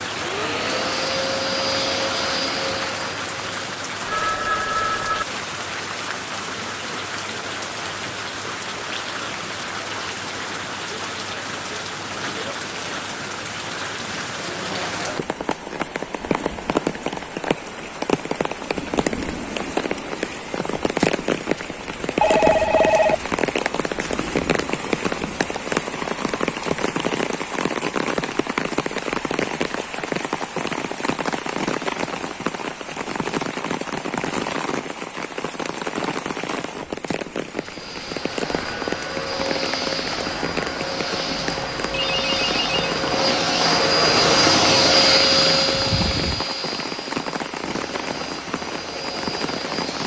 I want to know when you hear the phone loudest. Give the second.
23 s.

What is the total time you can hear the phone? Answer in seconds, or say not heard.
4 s.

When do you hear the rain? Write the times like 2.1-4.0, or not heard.
0.0-50.0.